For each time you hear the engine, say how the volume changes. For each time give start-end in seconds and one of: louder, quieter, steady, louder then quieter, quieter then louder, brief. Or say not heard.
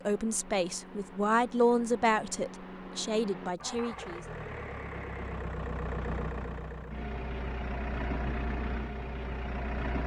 0.0-10.0 louder.